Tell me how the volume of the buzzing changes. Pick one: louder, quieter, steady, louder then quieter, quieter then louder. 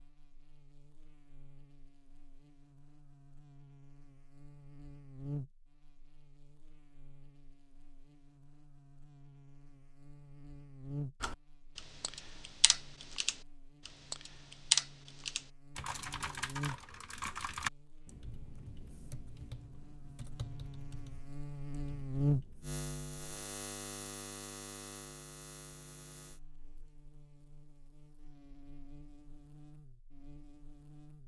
louder then quieter.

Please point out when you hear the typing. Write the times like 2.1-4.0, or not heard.
11.2-22.7.